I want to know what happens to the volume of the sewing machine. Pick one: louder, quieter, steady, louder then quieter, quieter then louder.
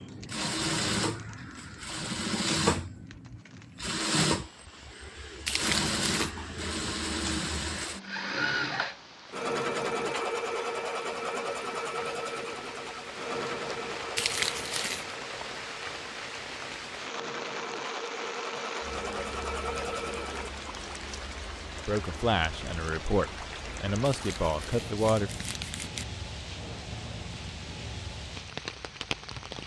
quieter.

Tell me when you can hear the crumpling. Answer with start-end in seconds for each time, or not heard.
5.5-6.3, 14.2-15.2, 24.0-26.1.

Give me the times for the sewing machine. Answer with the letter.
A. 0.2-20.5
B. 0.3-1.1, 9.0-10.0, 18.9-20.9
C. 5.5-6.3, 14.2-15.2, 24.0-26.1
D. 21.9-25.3
A.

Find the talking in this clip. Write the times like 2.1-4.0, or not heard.
21.9-25.3.